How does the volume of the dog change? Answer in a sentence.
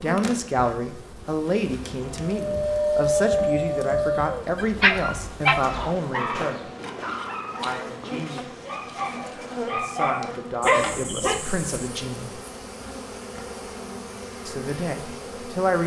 The volume of the dog goes down, then up.